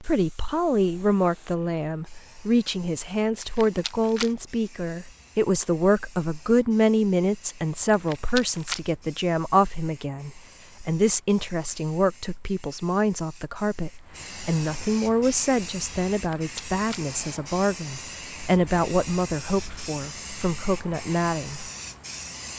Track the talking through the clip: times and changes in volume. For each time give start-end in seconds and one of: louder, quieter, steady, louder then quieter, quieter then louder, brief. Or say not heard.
0.0-21.7 steady.